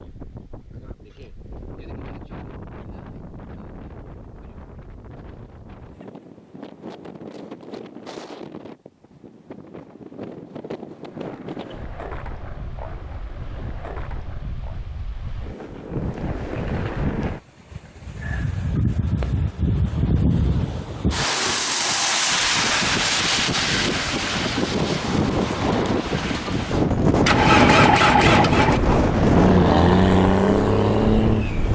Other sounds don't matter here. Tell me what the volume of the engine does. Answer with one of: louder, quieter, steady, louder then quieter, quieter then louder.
louder.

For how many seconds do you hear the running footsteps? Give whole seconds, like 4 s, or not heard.
not heard.